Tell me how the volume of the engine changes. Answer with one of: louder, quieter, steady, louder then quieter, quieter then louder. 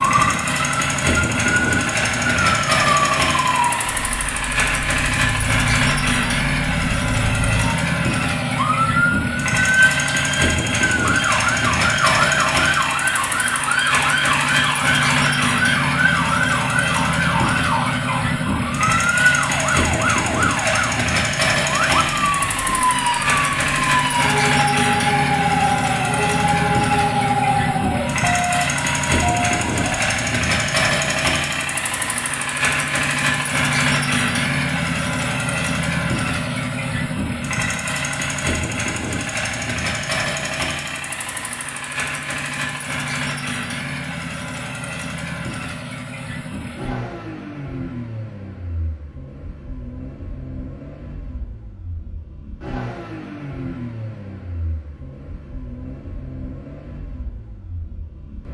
quieter.